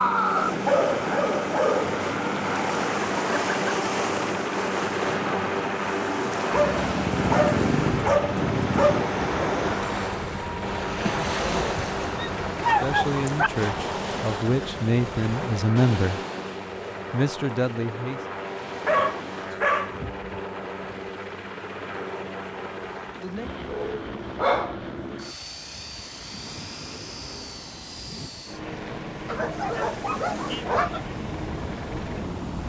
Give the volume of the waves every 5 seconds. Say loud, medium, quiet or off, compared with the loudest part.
loud, loud, loud, medium, quiet, quiet, medium.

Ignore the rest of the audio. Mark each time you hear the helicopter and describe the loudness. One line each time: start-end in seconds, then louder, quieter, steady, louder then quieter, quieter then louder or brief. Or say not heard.
0.0-32.6 quieter.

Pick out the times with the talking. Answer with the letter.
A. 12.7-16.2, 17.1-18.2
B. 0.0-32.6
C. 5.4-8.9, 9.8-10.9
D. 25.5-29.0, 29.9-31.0
A.